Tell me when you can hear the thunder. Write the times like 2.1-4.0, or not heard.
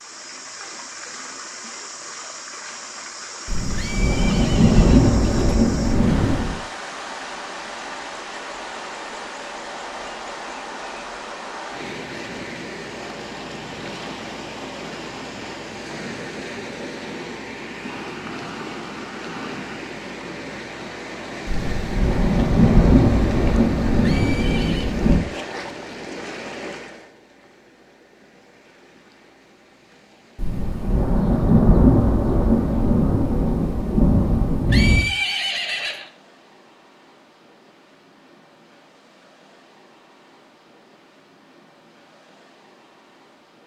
3.5-6.6, 21.4-25.2, 30.4-35.0.